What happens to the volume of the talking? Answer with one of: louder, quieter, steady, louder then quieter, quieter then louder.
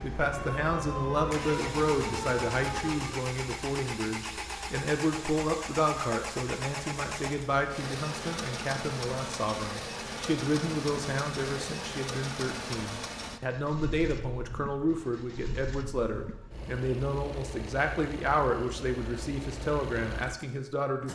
steady.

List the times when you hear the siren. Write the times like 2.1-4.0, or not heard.
0.0-3.2.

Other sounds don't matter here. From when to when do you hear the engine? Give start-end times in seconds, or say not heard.
0.0-21.1.